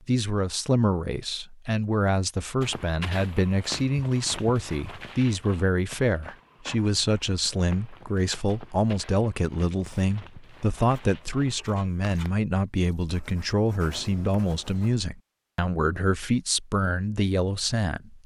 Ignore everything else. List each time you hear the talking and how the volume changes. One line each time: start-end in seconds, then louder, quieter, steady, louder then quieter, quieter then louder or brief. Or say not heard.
0.1-18.2 steady.